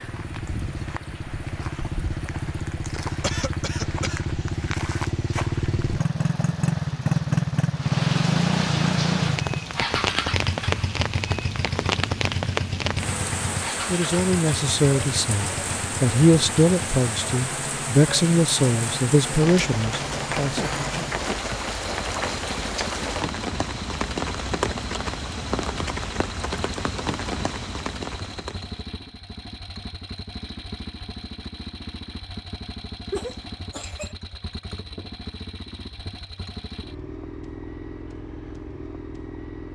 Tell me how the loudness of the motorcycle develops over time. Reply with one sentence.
The loudness of the motorcycle goes down.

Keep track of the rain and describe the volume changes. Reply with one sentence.
The volume of the rain goes up.